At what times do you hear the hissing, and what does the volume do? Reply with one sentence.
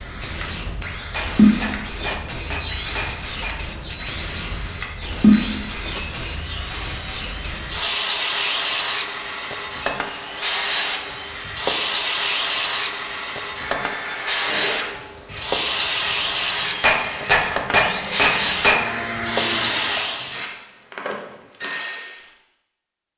The hissing can be heard from 0.0 to 20.4 s, at a steady volume.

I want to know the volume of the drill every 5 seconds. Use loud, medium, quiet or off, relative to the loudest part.
medium, loud, loud, loud, loud.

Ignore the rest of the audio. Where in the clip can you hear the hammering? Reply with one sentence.
You can hear the hammering from 1.1 to 3.5 s and from 16.8 to 18.8 s.